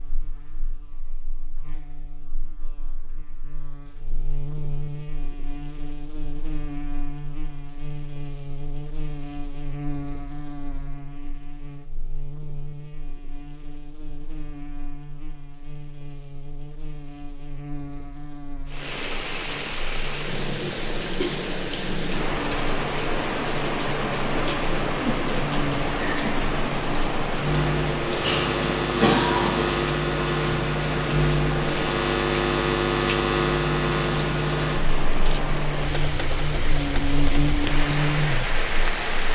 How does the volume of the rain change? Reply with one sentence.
The loudness of the rain stays about the same.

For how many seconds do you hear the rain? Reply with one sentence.
You can hear the rain for 21 seconds altogether.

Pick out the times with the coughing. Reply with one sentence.
The coughing can be heard from 28.2 to 29.7 s.